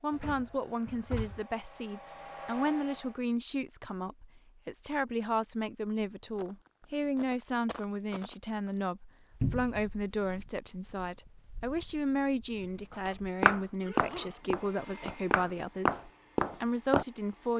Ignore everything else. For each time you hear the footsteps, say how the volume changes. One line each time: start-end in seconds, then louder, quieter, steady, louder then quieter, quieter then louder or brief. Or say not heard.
6.3-17.1 quieter then louder.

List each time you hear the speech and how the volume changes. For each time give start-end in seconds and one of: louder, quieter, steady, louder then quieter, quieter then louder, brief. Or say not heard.
0.0-17.5 steady.